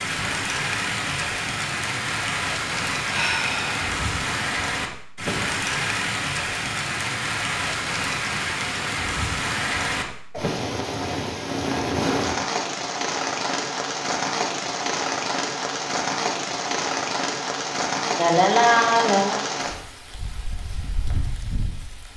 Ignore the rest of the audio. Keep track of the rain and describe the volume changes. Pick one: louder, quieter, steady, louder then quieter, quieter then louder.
steady.